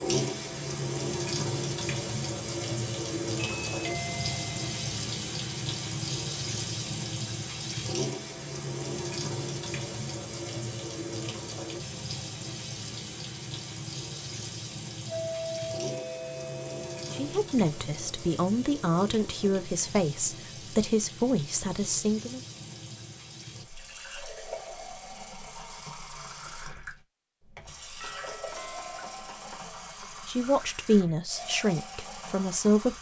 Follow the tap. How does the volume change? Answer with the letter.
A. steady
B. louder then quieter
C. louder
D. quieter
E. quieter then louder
D.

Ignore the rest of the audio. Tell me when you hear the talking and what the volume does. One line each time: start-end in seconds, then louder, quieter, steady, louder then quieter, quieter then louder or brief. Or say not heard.
17.1-22.4 steady
30.2-32.9 brief.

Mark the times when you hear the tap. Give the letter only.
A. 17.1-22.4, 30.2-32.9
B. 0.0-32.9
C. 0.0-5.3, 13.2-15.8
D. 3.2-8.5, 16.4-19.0
B.